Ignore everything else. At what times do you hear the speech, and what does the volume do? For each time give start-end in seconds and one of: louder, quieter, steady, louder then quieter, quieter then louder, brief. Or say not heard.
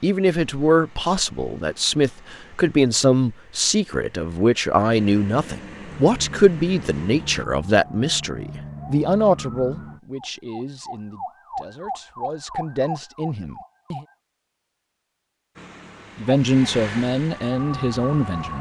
0.0-14.1 quieter
16.1-18.5 brief.